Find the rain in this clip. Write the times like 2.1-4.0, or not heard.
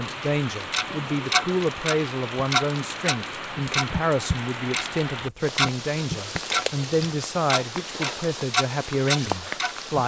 0.0-10.0.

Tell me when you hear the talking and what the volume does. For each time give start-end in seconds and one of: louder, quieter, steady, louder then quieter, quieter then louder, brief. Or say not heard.
0.0-10.0 steady.